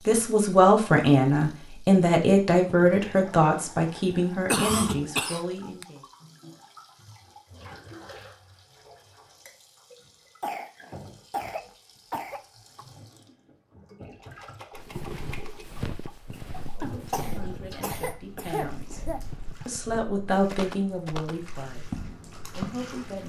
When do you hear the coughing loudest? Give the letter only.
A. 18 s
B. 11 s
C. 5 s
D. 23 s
C.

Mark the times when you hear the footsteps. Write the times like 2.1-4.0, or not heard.
14.8-22.9.